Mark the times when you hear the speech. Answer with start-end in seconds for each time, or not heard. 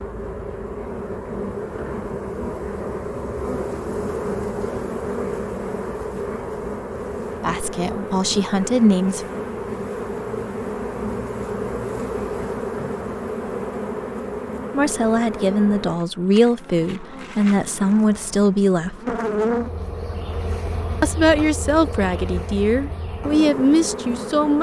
7.4-9.2, 14.7-18.9, 21.0-24.5.